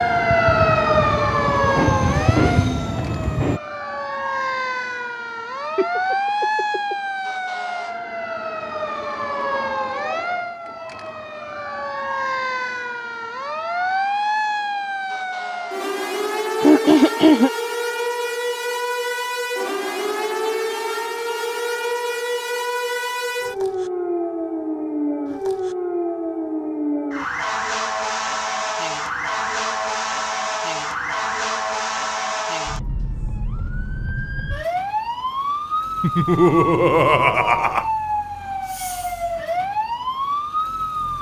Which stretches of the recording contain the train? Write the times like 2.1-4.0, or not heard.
0.0-3.6.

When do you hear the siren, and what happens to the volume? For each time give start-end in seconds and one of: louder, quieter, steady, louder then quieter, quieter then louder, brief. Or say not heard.
0.0-41.1 steady.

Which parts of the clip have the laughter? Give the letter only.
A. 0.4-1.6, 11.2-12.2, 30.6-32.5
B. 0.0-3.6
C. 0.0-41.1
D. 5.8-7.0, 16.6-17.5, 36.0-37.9
D.